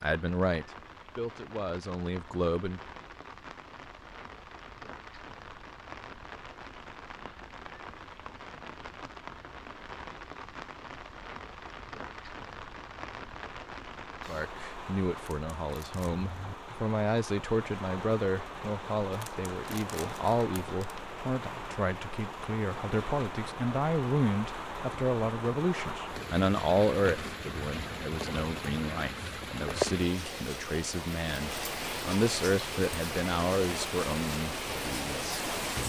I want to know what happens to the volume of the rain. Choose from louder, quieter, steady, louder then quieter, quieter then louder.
louder.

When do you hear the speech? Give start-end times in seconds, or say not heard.
0.0-2.8, 14.2-35.5.